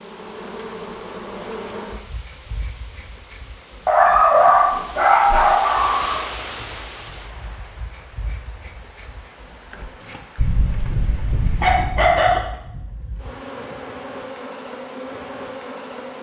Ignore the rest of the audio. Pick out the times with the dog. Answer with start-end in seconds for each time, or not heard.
3.9-6.2, 10.3-12.4.